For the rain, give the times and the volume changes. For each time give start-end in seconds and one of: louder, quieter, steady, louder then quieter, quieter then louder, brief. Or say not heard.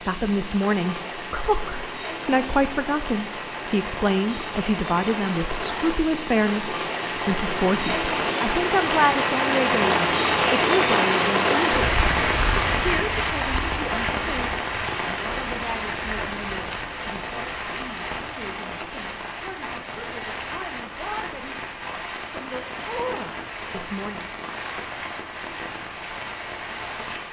0.0-27.2 louder then quieter.